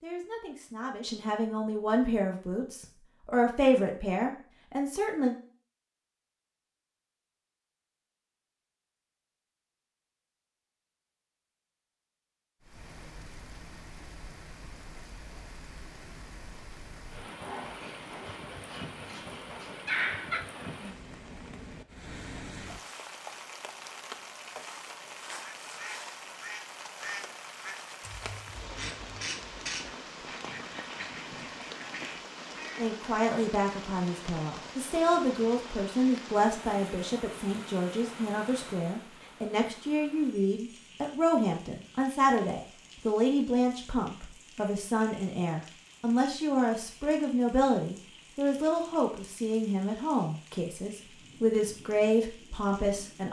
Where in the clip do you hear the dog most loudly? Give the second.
20 s.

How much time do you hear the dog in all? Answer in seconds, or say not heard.
3 s.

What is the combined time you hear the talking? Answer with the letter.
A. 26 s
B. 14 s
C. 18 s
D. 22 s
A.